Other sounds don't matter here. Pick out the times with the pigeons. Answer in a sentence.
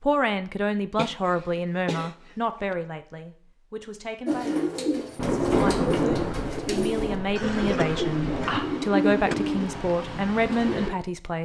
The pigeons can be heard from 4.2 to 10.9 s.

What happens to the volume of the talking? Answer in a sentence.
The loudness of the talking goes down, then up.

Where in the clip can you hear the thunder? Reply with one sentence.
The thunder can be heard from 5.2 to 8.6 s.